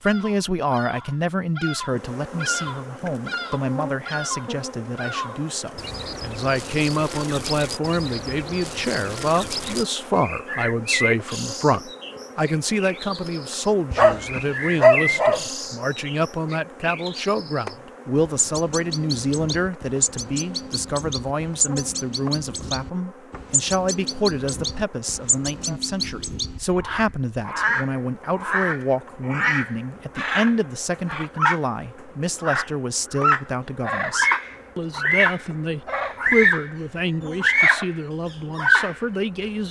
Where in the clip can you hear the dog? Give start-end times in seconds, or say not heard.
13.9-15.4.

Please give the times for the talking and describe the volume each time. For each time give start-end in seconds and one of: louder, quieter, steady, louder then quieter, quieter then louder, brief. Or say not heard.
0.0-39.6 steady.